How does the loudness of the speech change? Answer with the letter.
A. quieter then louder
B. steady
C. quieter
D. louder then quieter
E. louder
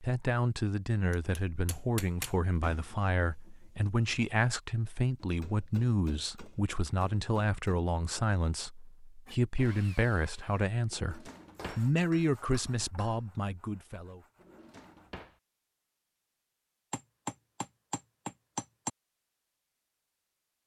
B.